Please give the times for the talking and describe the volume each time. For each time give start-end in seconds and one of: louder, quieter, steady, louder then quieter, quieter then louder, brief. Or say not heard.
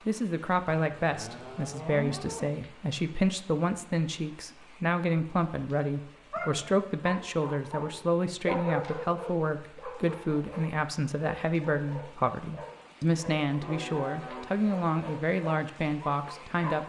0.1-16.8 steady.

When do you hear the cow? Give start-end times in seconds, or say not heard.
0.8-2.5, 13.6-14.7.